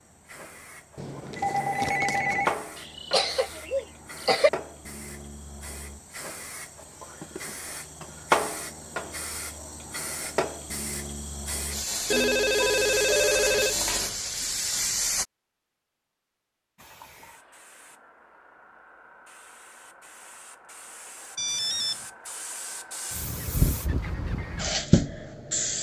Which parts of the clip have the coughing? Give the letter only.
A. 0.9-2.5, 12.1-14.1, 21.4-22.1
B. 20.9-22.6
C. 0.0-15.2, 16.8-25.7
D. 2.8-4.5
D.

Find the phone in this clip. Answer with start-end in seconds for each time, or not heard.
0.9-2.5, 12.1-14.1, 21.4-22.1.